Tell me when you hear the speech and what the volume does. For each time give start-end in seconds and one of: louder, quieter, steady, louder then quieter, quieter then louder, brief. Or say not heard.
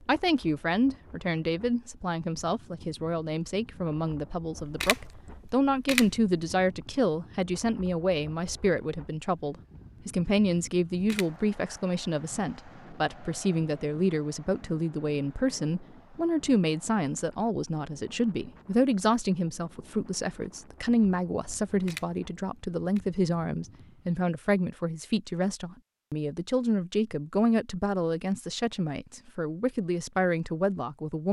0.1-31.2 steady.